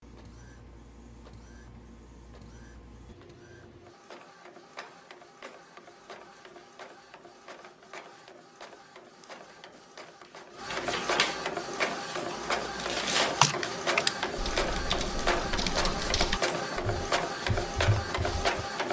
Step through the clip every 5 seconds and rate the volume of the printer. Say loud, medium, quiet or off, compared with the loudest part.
quiet, quiet, loud, loud.